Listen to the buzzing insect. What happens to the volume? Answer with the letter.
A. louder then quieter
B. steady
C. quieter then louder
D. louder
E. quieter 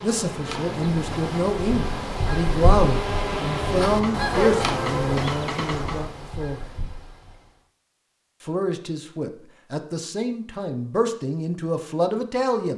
D.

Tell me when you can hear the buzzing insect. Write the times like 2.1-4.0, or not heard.
0.0-6.1.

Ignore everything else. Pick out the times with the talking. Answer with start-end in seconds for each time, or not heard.
0.0-6.7, 8.4-12.7.